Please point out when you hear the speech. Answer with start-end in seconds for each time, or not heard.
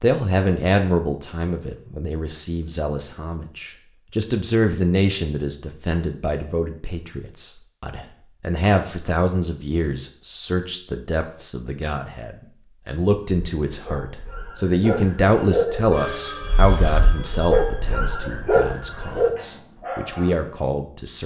0.0-21.2.